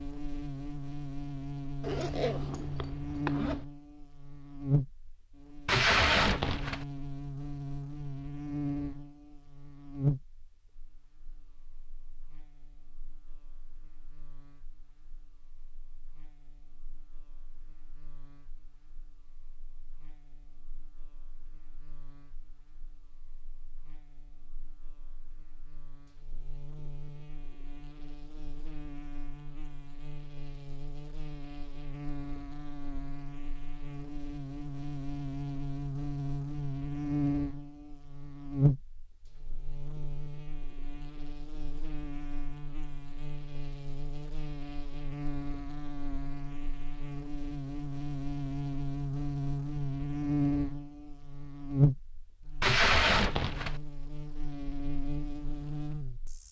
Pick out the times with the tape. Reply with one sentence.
The tape can be heard from 5.7 to 6.8 s and from 52.6 to 53.8 s.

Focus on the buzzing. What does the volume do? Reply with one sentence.
The loudness of the buzzing goes down, then up.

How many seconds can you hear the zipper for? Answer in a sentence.
The zipper can be heard for 2 seconds in total.